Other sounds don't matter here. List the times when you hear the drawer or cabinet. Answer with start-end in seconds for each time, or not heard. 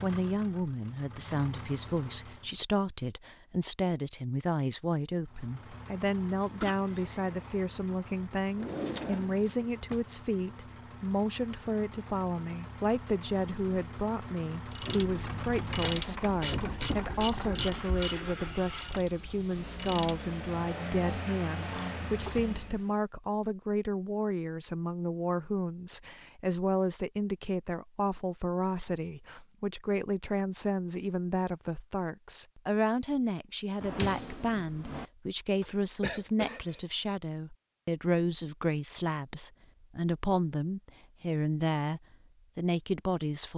8.6-10.0, 21.6-22.6, 33.8-35.0.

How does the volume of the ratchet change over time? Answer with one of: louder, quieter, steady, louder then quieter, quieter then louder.
quieter.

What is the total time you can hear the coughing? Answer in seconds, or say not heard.
3 s.